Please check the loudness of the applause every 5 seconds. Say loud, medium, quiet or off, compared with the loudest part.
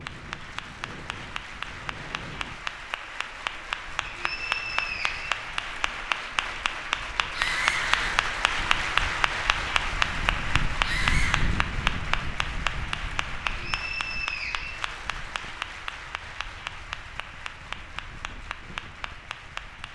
medium, loud, loud, medium.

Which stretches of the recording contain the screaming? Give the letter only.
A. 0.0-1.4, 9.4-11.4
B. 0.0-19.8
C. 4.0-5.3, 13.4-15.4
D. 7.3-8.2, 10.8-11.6
D.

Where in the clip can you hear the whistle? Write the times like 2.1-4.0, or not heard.
4.0-5.3, 13.4-15.4.